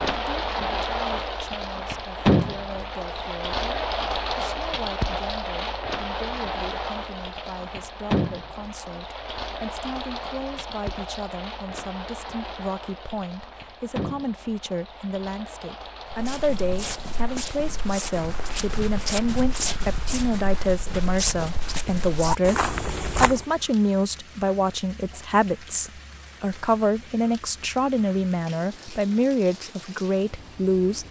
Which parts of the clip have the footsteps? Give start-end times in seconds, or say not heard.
16.1-23.4.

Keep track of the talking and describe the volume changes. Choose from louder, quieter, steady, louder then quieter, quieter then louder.
louder.